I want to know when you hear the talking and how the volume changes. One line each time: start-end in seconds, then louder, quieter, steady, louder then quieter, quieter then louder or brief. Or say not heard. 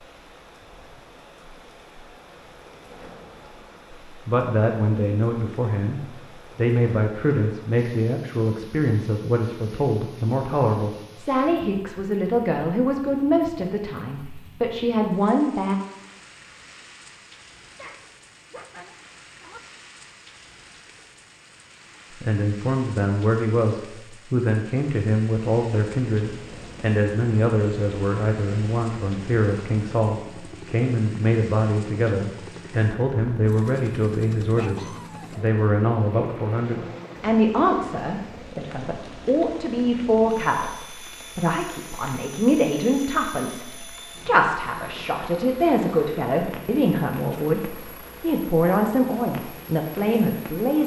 4.2-15.8 steady
22.2-50.8 steady.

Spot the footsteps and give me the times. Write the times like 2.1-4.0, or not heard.
not heard.